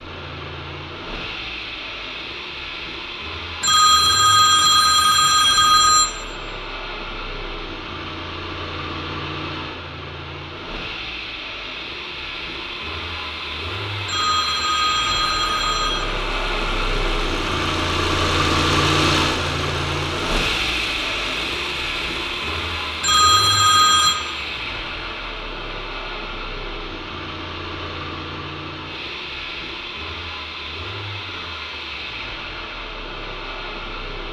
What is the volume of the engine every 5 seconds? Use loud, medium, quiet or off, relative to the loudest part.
medium, medium, medium, loud, loud, medium, medium.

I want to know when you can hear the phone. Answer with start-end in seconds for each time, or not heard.
3.6-6.1, 14.1-16.1, 23.0-24.1.